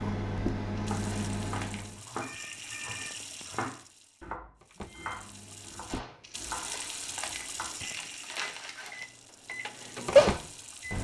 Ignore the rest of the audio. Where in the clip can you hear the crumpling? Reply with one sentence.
You can hear the crumpling from 0.9 to 2.0 s and from 6.5 to 9.1 s.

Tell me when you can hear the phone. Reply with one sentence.
The phone can be heard from 2.2 to 3.1 s.